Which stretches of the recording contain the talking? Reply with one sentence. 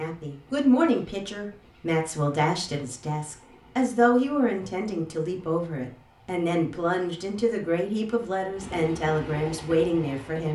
You can hear the talking from 0.0 to 10.5 s.